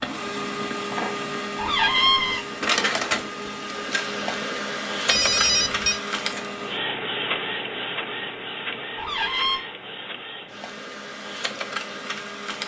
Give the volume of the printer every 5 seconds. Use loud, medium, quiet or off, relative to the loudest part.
loud, loud, medium.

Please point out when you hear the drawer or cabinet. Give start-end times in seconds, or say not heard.
1.6-2.5, 8.9-9.6.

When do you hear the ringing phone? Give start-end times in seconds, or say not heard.
5.1-6.0.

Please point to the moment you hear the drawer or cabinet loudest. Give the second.
2 s.